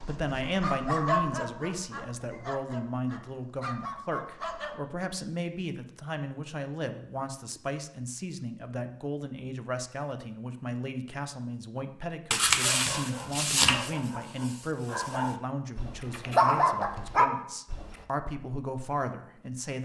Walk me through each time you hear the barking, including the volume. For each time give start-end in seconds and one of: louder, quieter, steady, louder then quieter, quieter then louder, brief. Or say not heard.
0.0-4.8 quieter then louder
12.3-17.9 quieter then louder.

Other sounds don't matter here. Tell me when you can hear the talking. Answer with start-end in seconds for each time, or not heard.
0.1-19.8.